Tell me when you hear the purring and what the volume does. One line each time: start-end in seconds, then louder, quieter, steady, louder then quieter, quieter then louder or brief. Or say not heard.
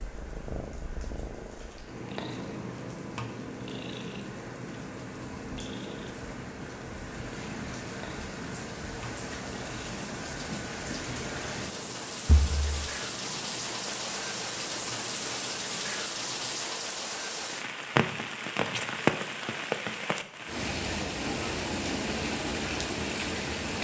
0.0-16.8 quieter.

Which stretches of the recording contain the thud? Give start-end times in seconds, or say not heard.
12.2-12.9.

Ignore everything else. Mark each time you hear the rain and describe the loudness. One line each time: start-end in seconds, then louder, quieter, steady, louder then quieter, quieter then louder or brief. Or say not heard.
0.0-23.7 louder.